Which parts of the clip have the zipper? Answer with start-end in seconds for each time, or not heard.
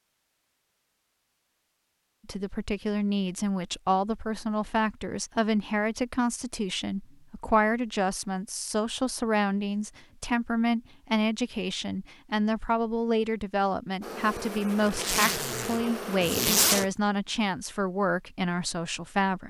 14.8-16.9.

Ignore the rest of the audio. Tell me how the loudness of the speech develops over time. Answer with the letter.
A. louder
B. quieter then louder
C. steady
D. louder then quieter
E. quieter
C.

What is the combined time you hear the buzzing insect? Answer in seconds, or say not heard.
3 s.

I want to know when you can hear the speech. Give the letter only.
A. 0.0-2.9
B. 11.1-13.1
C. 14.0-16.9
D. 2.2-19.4
D.